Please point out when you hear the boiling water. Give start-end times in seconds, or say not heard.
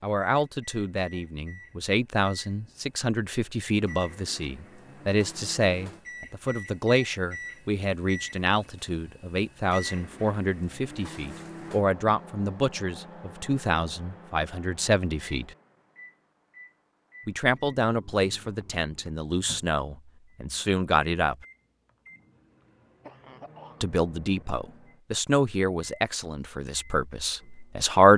not heard.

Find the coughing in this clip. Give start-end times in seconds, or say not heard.
22.6-23.9.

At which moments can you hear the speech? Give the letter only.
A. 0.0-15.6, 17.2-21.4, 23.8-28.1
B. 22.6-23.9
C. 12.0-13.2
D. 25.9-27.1
A.